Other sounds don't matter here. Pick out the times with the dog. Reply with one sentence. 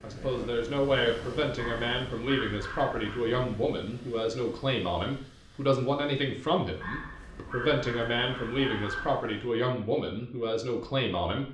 You can hear the dog from 1.6 to 3.2 s and from 6.8 to 9.2 s.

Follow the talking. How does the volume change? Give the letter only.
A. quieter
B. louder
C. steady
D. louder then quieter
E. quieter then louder
C.